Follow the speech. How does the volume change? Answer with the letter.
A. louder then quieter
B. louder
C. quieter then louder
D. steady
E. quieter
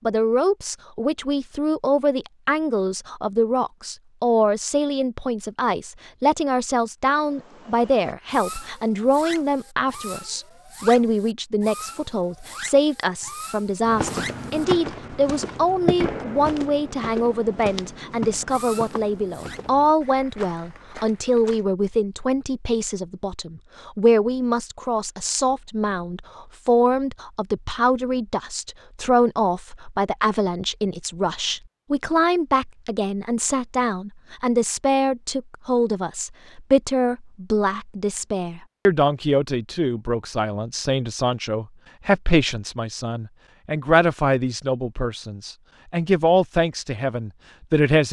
D.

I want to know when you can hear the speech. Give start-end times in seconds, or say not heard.
0.1-48.0.